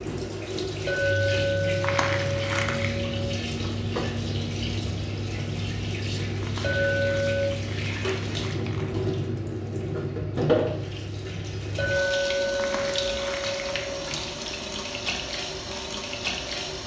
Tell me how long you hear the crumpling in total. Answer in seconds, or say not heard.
5 s.